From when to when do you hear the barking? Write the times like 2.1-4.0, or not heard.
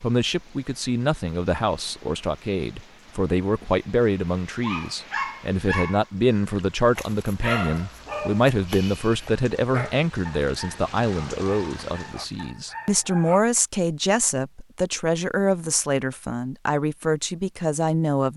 4.6-13.4.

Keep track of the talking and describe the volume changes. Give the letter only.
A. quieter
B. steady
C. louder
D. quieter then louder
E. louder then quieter
B.